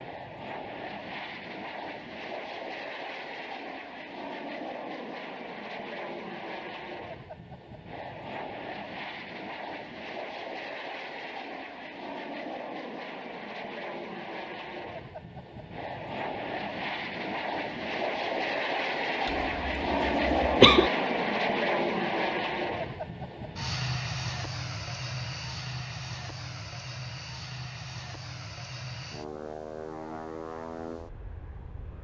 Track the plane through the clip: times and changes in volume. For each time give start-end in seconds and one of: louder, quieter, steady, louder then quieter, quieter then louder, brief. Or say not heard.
0.0-31.9 louder then quieter.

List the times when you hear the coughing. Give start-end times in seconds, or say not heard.
19.2-20.9.